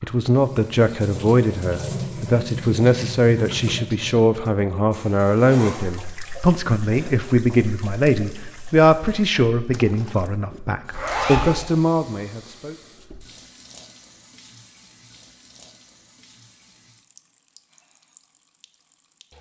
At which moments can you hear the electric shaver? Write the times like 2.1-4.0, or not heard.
not heard.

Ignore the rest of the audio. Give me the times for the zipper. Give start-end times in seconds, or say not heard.
4.9-5.8, 10.9-11.5.